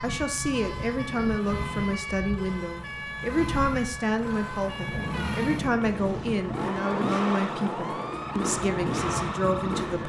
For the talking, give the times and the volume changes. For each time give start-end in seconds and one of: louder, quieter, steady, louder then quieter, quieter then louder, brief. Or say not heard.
0.0-10.0 steady.